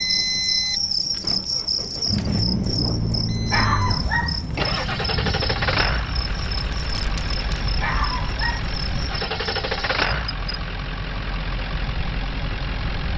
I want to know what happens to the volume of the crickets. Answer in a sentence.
The loudness of the crickets goes down.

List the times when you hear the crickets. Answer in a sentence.
The crickets can be heard from 0.0 to 10.6 s.